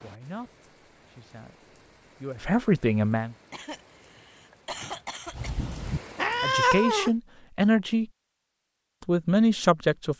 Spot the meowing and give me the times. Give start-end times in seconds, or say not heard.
6.2-7.1.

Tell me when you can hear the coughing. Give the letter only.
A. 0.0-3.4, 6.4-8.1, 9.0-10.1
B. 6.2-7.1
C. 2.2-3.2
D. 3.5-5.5
D.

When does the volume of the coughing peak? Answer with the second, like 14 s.
5 s.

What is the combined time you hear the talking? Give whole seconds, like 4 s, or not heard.
6 s.